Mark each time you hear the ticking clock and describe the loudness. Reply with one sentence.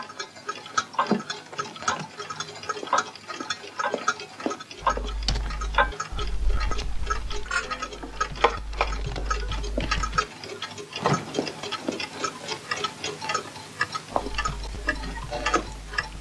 You can hear the ticking clock from 0.0 to 16.1 s, at a steady volume.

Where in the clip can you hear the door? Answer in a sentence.
You can hear the door from 11.0 to 11.7 s.